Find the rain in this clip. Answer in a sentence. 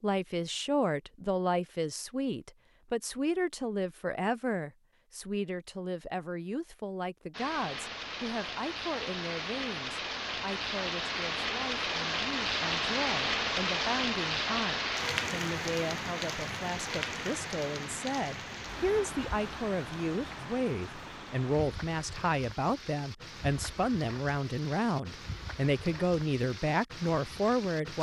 The rain can be heard from 7.3 to 27.9 s.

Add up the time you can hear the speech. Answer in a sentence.
The speech can be heard for 28 seconds in total.